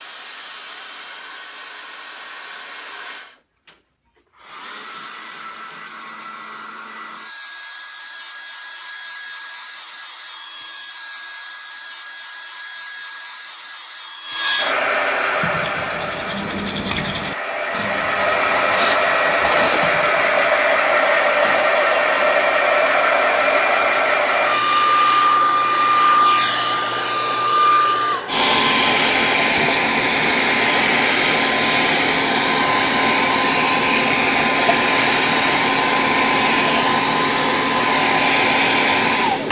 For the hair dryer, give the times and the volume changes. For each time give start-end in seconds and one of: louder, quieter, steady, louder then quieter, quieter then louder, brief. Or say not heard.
0.0-39.4 louder.